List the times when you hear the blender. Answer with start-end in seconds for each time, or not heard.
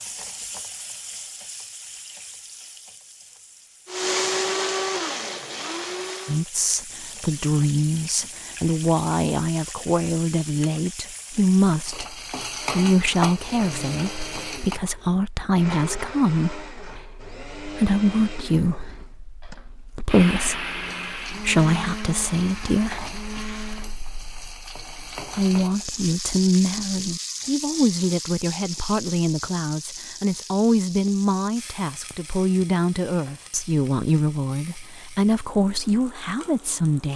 3.9-6.5, 12.5-24.0.